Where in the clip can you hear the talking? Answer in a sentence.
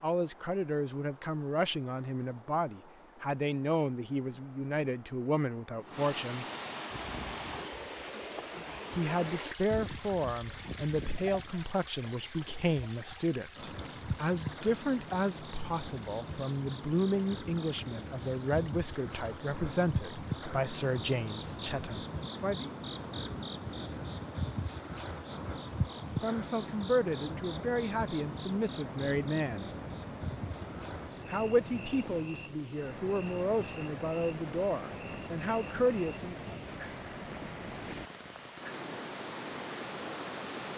You can hear the talking from 0.0 to 6.5 s, from 8.9 to 22.8 s, from 26.2 to 29.7 s and from 31.2 to 36.4 s.